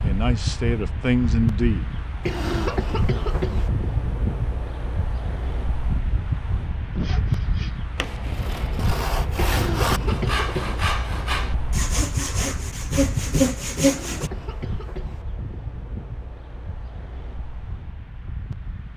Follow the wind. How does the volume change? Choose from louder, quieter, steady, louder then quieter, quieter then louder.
quieter.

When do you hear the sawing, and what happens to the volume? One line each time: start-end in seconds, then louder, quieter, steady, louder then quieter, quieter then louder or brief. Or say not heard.
6.9-14.3 louder.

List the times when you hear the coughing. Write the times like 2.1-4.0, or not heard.
2.2-3.7, 9.3-10.8, 13.8-15.2.